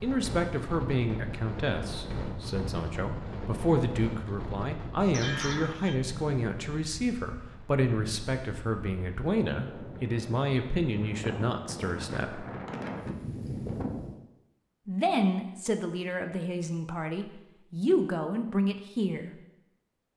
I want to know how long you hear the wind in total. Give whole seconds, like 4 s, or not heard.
14 s.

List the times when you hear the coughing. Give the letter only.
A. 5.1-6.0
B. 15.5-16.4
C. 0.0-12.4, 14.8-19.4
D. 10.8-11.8
A.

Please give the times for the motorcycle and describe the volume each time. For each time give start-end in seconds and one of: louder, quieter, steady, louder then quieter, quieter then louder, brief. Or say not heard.
not heard.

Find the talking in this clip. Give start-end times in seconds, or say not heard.
0.0-12.4, 14.8-19.4.